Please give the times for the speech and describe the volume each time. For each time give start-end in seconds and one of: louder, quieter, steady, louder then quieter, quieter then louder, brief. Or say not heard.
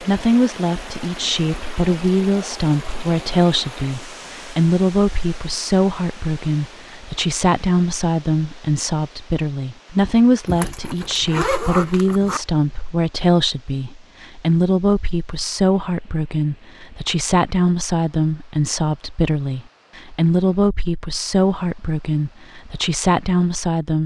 0.0-24.0 steady.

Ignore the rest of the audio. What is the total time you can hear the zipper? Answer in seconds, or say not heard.
2 s.